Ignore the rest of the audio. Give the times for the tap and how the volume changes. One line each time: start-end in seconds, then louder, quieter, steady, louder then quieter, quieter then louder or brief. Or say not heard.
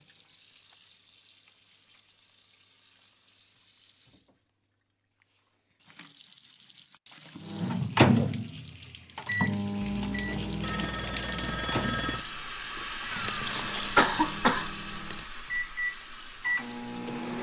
0.0-17.3 louder.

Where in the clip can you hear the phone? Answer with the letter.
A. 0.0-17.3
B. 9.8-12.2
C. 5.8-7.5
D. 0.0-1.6
B.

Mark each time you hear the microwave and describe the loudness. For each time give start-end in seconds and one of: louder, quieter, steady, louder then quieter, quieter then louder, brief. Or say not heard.
7.5-17.3 quieter then louder.